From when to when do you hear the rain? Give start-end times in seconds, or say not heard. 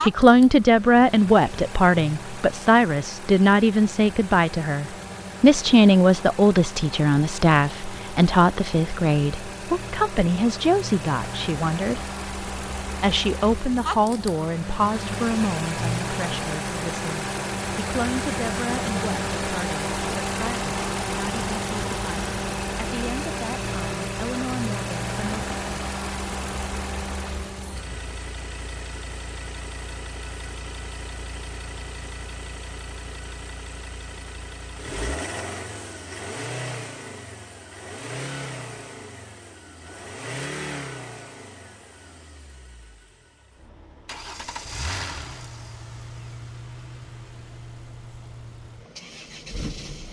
not heard.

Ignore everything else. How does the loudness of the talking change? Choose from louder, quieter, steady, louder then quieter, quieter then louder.
quieter.